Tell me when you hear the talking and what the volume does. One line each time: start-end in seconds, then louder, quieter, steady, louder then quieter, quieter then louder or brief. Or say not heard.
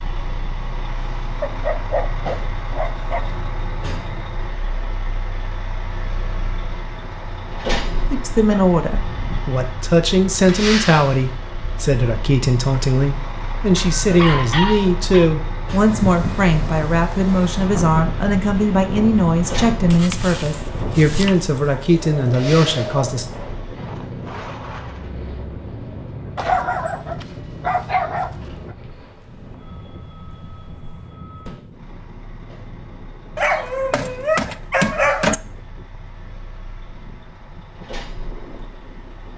8.1-23.2 steady.